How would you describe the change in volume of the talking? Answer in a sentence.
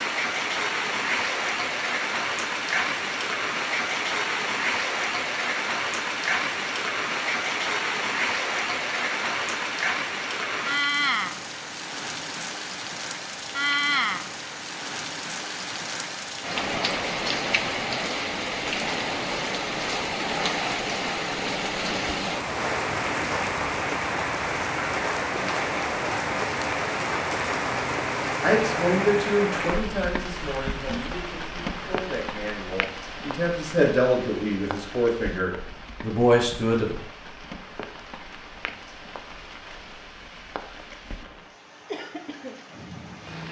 The volume of the talking goes down, then up.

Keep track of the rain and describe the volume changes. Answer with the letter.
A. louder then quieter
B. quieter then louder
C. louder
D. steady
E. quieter
E.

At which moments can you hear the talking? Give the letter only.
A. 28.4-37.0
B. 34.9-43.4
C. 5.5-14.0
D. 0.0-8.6
A.